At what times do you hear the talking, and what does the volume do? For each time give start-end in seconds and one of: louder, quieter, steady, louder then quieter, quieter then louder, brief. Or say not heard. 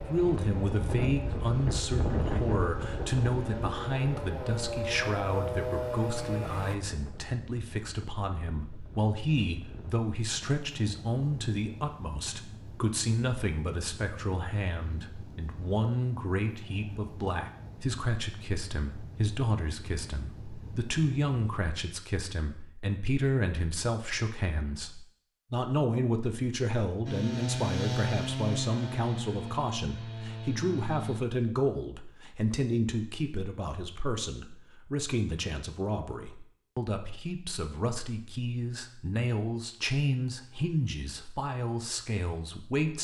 0.0-42.9 steady.